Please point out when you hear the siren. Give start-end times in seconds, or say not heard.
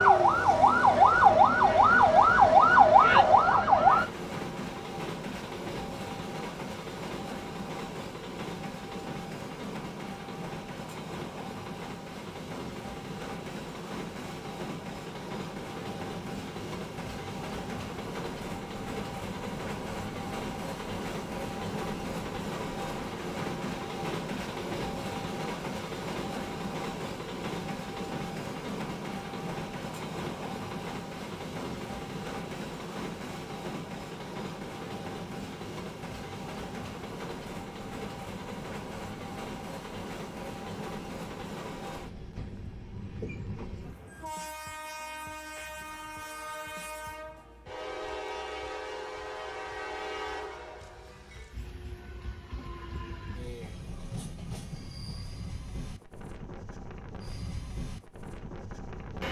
0.0-4.0.